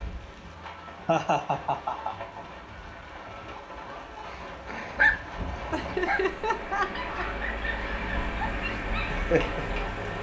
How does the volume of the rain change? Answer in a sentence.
The loudness of the rain goes up.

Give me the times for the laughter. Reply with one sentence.
You can hear the laughter from 1.1 to 2.1 s and from 5.7 to 7.5 s.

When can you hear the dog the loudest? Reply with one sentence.
The loudest moment of the dog is at 5 seconds.